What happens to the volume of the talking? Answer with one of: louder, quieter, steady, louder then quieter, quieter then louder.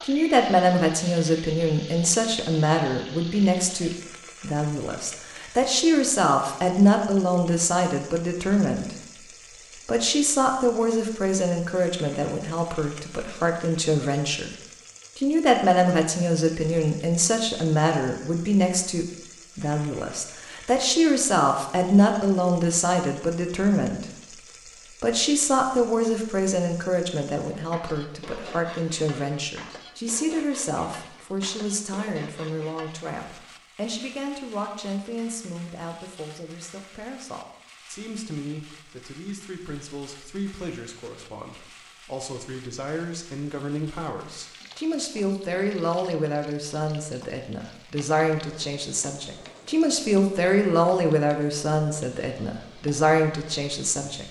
quieter then louder.